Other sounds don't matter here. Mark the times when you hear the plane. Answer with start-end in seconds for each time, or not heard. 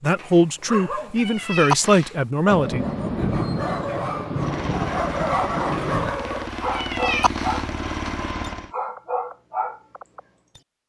4.3-8.8.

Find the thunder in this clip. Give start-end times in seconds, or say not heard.
2.5-6.2.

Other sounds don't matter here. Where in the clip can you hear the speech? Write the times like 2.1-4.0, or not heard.
0.0-2.9.